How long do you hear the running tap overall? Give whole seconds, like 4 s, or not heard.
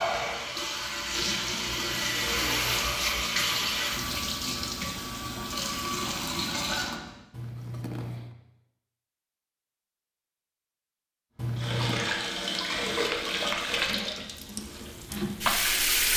12 s.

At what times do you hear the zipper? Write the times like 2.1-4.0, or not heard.
1.4-3.1, 7.3-8.3, 11.3-12.1.